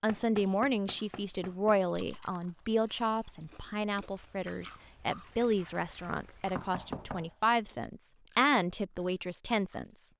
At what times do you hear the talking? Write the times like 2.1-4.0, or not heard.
0.0-10.1.